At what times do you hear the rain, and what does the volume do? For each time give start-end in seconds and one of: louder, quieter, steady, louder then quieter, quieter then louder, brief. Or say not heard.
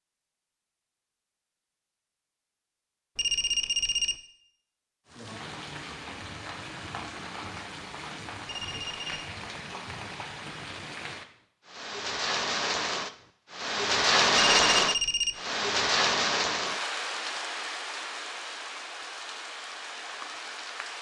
5.0-20.9 louder then quieter.